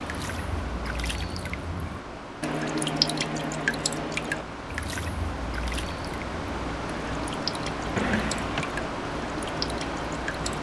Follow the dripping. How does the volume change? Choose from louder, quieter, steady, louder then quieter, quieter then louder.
louder then quieter.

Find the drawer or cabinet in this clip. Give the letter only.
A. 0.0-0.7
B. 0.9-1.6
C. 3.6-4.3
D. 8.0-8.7
D.